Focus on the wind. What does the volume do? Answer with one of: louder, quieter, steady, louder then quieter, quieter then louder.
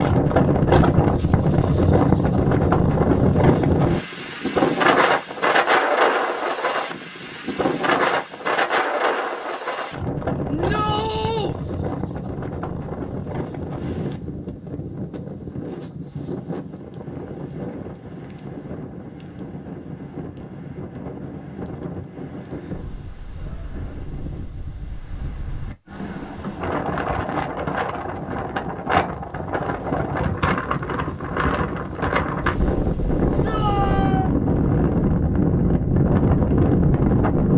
quieter then louder.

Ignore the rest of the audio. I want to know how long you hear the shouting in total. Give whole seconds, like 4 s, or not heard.
2 s.